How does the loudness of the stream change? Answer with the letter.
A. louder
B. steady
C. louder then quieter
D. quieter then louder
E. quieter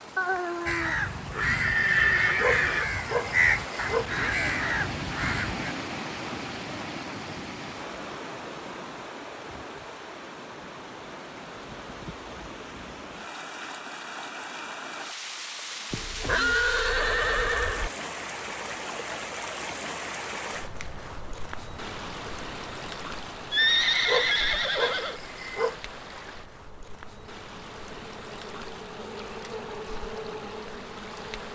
E.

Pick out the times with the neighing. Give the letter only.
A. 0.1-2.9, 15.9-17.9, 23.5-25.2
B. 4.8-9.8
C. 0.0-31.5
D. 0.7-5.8
A.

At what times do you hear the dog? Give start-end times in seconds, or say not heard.
2.4-4.1, 24.1-25.8.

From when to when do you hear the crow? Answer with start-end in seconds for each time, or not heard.
0.7-5.8.